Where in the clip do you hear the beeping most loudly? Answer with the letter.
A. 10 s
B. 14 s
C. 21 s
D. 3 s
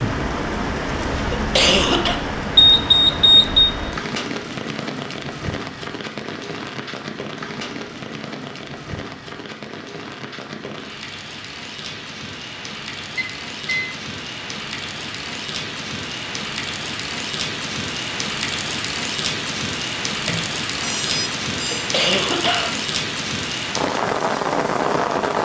D.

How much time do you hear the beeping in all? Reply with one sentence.
You can hear the beeping for 4 seconds altogether.